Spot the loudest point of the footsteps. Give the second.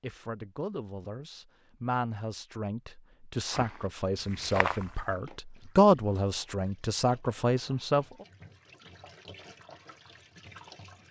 5 s.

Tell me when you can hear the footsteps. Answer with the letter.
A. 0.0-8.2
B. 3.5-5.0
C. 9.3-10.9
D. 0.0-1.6
B.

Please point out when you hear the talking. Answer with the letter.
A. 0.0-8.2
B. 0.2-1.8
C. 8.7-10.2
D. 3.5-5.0
A.